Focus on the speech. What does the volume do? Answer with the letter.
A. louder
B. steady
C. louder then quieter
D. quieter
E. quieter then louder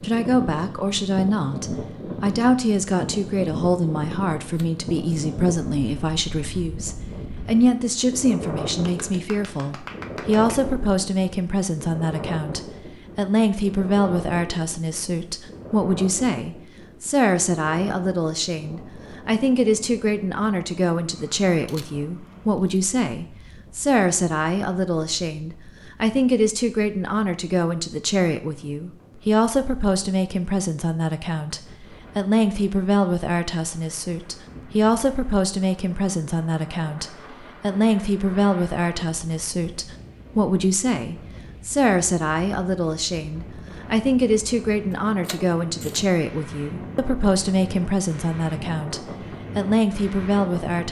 B.